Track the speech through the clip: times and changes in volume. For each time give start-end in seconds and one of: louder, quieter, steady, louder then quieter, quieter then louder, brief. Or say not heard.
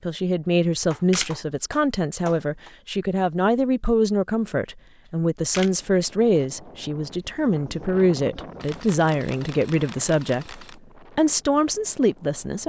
0.0-12.6 steady.